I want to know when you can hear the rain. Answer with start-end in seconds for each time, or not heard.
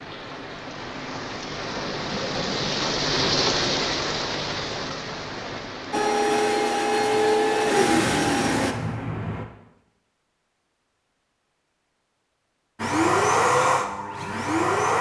0.0-9.4.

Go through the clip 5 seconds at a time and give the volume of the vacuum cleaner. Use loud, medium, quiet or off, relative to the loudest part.
off, loud, loud.